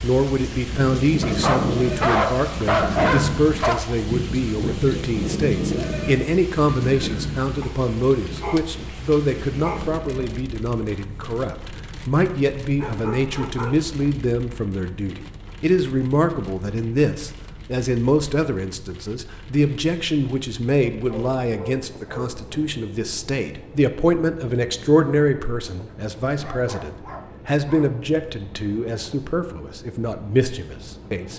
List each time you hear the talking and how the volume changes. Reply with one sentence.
The talking can be heard from 0.0 to 31.3 s, at a steady volume.